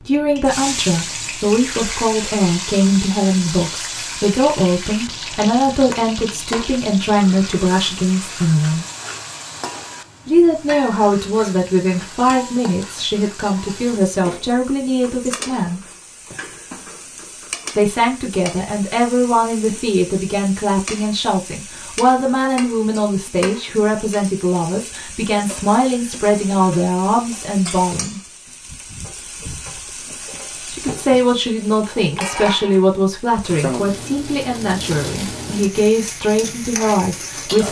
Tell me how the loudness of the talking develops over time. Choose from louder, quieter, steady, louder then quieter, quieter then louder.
steady.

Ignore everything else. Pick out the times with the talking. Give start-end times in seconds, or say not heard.
0.1-8.8, 10.2-15.8, 17.8-28.2, 30.7-37.6.